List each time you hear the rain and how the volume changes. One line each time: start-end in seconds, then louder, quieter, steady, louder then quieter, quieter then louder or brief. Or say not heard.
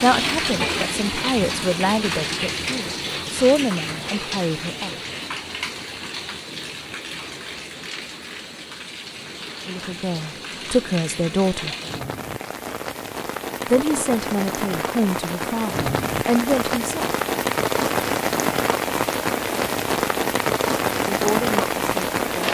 0.0-22.4 quieter then louder.